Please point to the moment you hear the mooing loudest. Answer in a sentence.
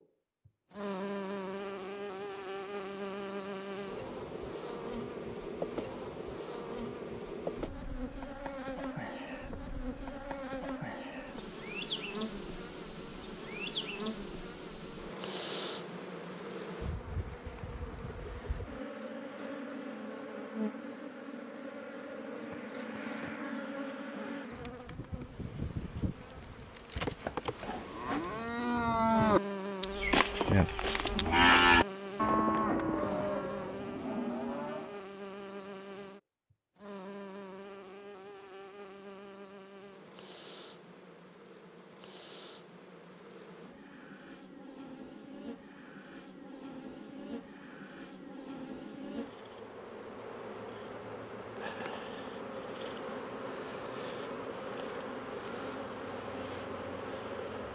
The volume of the mooing peaks at 32 seconds.